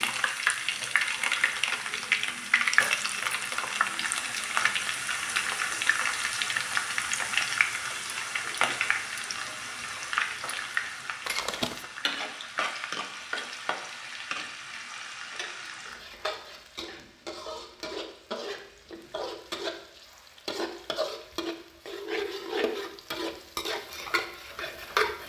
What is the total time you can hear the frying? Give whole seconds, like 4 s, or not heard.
25 s.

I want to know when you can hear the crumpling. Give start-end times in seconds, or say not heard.
11.2-11.8.